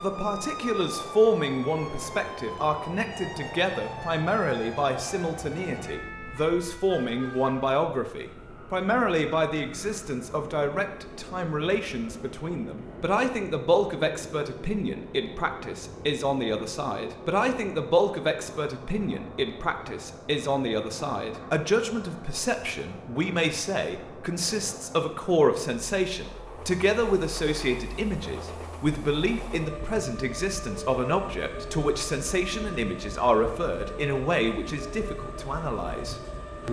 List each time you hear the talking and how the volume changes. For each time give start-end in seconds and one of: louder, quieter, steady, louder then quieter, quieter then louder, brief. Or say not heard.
0.0-36.6 steady.